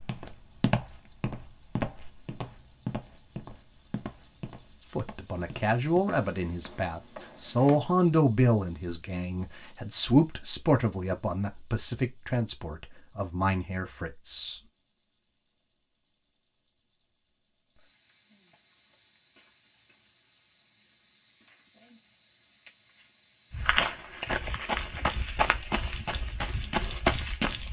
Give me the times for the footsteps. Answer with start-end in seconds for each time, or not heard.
0.0-7.8, 23.5-27.6.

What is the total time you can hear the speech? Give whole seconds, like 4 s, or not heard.
10 s.